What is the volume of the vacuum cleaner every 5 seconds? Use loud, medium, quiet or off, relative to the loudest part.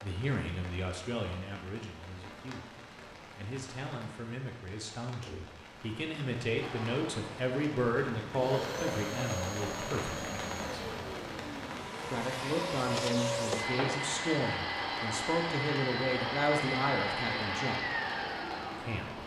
off, medium, loud, loud.